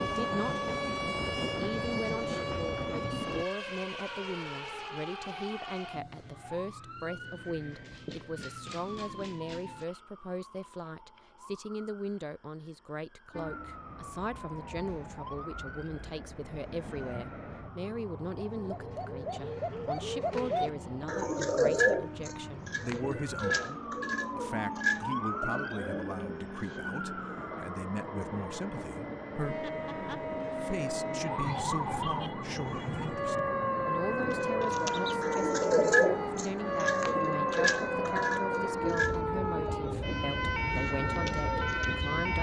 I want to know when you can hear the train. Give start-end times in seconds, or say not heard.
0.0-3.5, 13.3-42.3.